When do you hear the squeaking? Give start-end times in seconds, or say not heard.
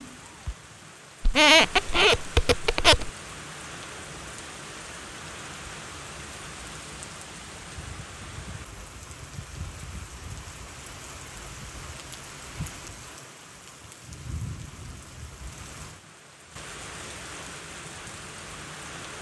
1.2-3.1.